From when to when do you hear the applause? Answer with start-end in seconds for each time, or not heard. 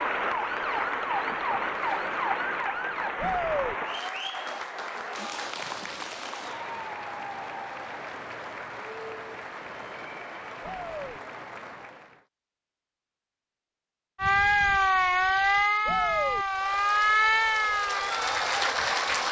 0.0-12.2, 16.4-19.2.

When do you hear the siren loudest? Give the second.
15 s.